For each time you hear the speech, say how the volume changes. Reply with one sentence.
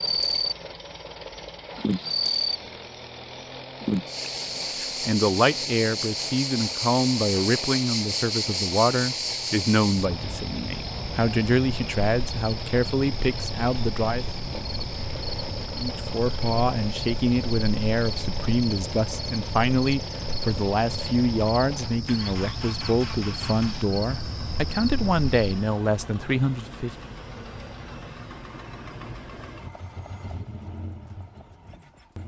You can hear the speech from 5.0 to 14.2 s, at a steady volume; and from 15.8 to 26.9 s, at a steady volume.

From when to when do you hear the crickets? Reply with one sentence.
You can hear the crickets from 0.0 to 0.6 s, from 1.8 to 2.6 s and from 3.8 to 25.8 s.